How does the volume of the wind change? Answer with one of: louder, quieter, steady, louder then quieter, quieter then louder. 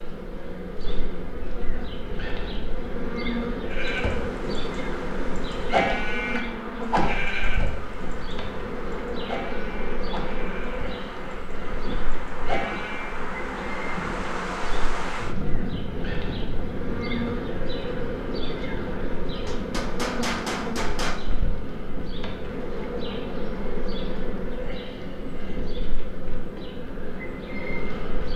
louder then quieter.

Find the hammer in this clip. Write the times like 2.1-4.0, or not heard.
19.4-21.2.